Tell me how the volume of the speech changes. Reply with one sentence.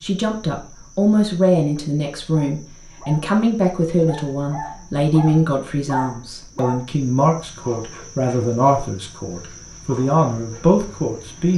The loudness of the speech stays about the same.